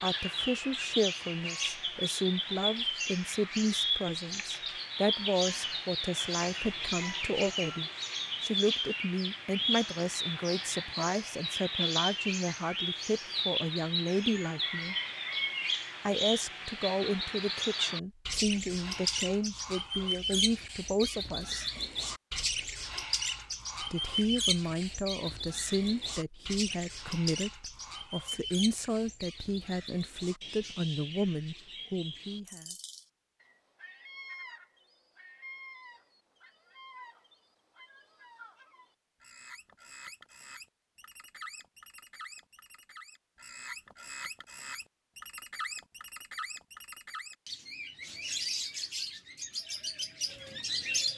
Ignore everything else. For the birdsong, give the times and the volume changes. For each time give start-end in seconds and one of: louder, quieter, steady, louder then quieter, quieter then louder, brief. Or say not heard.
0.0-51.1 quieter then louder.